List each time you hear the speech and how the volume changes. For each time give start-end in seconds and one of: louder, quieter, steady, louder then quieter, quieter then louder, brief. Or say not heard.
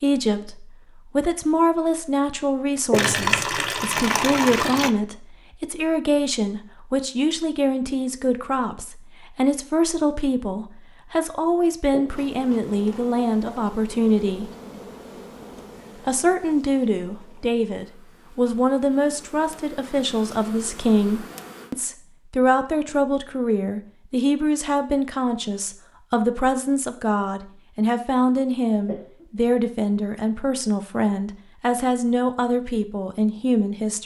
0.0-14.5 steady
16.1-34.0 steady.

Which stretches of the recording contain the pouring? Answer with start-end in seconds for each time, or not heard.
2.9-4.9.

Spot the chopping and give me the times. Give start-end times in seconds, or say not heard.
not heard.